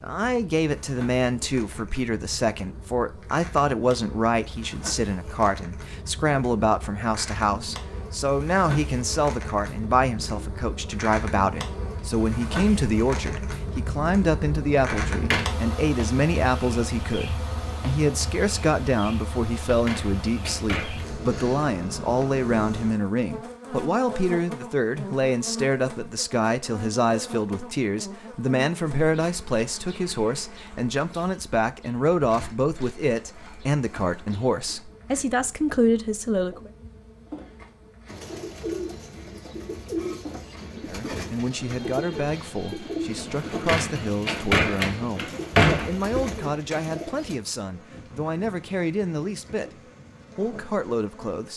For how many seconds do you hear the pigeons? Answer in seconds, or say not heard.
9 s.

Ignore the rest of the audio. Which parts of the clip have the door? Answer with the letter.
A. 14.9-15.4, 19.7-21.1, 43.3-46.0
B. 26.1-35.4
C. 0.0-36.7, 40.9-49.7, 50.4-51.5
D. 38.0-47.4
A.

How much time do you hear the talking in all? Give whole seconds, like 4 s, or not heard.
47 s.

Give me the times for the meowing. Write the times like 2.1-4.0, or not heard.
not heard.